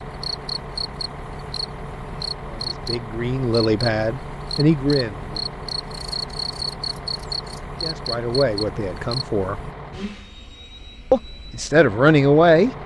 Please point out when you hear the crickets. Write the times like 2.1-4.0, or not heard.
0.0-9.8.